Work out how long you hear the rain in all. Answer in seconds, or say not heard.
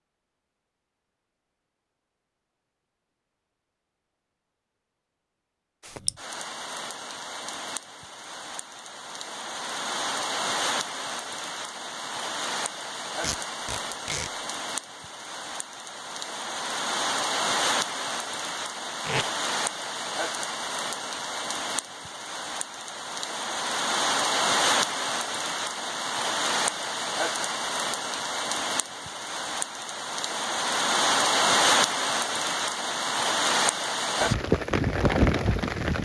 30 s.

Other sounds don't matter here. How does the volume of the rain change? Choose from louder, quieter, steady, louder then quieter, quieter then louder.
louder.